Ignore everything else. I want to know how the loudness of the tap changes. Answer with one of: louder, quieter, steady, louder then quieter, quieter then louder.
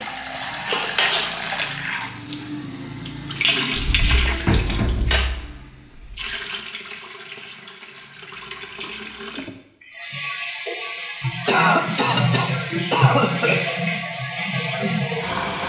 quieter then louder.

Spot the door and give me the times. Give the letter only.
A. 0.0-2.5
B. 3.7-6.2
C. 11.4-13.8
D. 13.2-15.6
B.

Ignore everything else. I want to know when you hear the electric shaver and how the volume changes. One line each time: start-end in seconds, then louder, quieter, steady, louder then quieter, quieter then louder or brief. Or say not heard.
not heard.